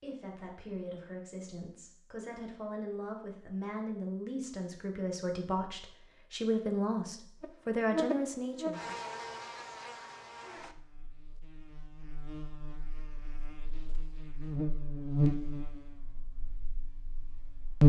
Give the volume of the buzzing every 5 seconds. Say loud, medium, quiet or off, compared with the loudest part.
off, medium, quiet, loud.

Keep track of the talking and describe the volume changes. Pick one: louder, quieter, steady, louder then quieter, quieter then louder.
louder.